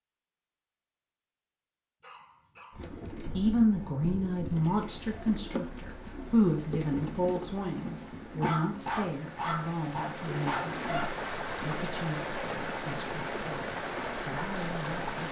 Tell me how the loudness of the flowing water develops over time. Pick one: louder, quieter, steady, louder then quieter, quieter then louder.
louder.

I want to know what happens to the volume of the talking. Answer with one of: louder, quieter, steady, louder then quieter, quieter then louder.
quieter.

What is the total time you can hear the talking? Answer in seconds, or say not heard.
12 s.